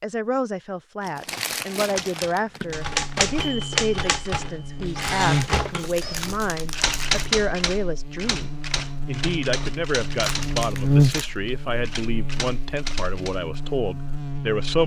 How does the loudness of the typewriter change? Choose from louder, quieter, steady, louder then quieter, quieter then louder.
quieter.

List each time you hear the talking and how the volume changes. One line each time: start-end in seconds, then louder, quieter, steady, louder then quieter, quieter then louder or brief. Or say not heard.
0.0-14.8 steady.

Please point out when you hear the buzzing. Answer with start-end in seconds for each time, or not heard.
2.6-14.8.